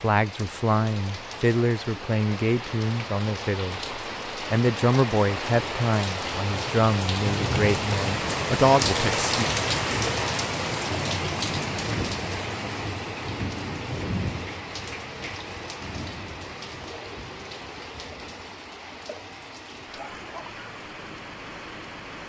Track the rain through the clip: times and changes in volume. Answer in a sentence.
The rain can be heard from 0.0 to 22.2 s, getting louder then quieter.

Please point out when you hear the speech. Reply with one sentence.
The speech can be heard from 0.0 to 9.4 s.